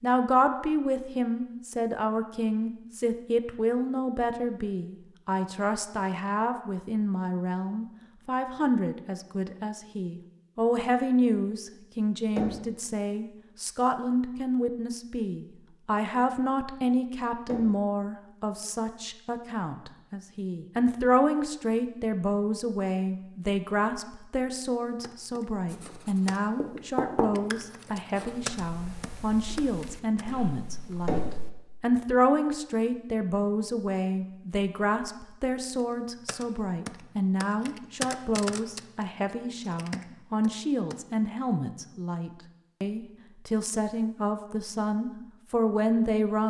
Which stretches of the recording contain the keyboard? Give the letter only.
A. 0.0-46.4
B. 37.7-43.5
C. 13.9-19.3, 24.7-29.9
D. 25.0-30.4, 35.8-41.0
D.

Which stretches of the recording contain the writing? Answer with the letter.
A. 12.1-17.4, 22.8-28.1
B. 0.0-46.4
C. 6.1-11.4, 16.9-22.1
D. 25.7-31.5
D.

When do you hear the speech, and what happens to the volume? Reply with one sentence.
The speech can be heard from 0.0 to 46.4 s, at a steady volume.